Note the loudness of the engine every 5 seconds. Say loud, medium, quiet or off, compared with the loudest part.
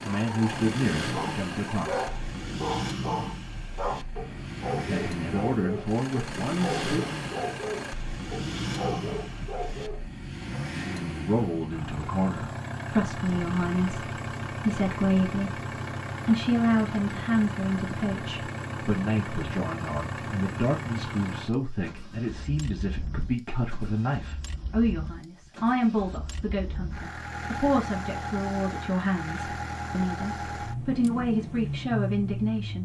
loud, loud, loud, loud, medium, loud, loud.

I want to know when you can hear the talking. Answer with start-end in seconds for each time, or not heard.
0.0-2.1, 4.8-6.8, 11.2-15.6, 16.2-32.8.